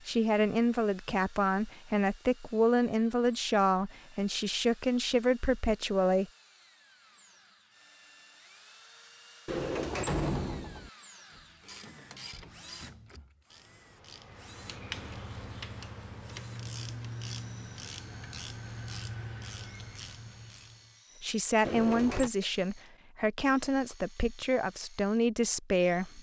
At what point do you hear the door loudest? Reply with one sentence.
The volume of the door peaks at 10 seconds.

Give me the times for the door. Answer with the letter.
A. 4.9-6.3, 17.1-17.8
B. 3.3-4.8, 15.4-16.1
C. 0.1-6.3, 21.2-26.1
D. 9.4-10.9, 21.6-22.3
D.